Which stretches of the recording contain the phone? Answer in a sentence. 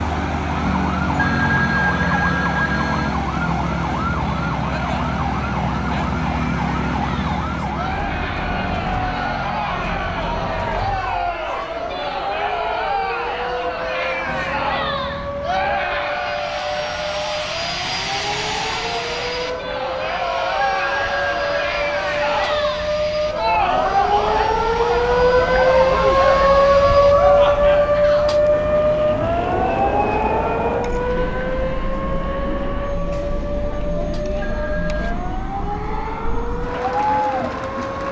You can hear the phone from 1.1 to 3.1 s, from 20.6 to 21.6 s and from 34.4 to 35.1 s.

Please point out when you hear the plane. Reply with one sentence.
The plane can be heard from 0.0 to 10.6 s and from 14.2 to 38.0 s.